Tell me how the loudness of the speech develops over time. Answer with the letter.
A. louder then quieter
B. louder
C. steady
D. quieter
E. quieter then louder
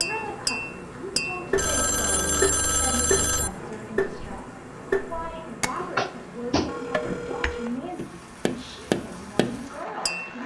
C.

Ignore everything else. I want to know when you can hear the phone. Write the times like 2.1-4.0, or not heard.
1.6-3.5, 5.8-7.8.